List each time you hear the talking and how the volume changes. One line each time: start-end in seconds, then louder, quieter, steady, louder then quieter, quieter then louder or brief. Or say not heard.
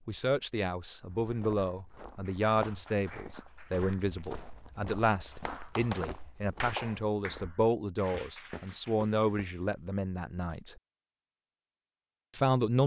0.1-10.8 steady
12.3-12.8 brief.